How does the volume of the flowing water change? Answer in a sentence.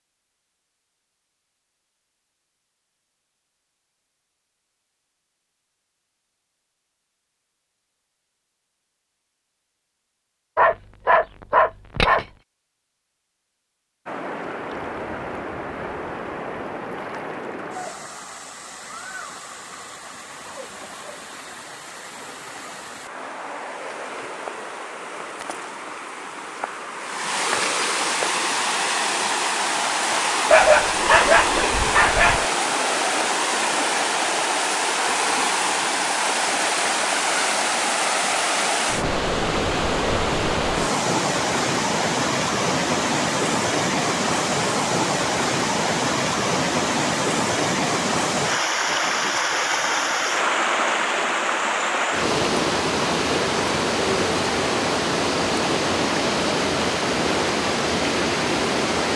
The volume of the flowing water goes up.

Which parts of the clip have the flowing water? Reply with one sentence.
You can hear the flowing water from 14.1 to 59.1 s.